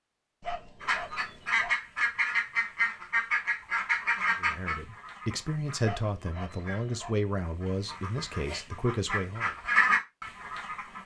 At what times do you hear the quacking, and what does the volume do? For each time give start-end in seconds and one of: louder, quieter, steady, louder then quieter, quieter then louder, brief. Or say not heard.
0.8-11.0 quieter then louder.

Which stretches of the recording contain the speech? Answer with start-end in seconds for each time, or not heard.
4.4-9.6.